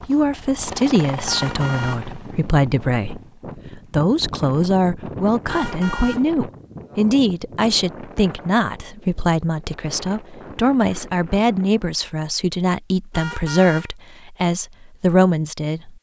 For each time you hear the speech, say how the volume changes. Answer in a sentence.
The speech can be heard from 0.1 to 15.9 s, at a steady volume.